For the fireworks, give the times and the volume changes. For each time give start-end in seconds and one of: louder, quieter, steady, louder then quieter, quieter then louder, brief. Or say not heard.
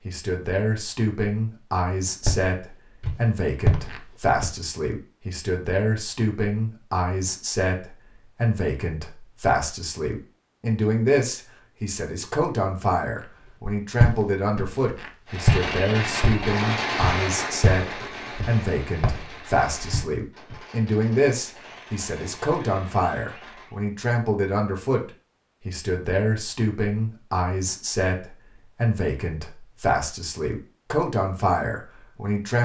15.2-23.8 quieter.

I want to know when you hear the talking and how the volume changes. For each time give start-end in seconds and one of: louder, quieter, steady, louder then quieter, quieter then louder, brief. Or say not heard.
0.1-32.6 steady.